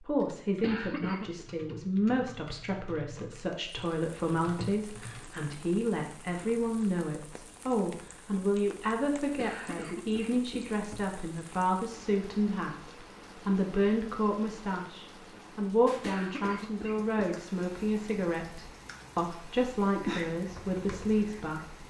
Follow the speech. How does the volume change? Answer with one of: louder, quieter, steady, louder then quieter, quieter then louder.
steady.